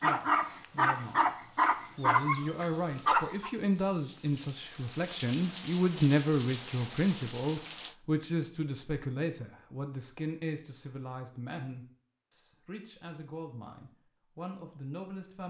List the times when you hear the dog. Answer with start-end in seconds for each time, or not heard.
0.0-3.5.